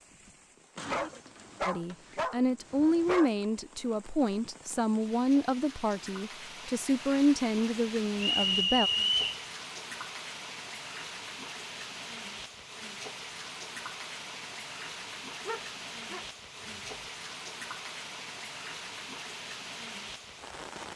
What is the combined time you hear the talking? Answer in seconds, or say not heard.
7 s.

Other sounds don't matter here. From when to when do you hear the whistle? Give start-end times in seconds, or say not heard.
8.2-9.3.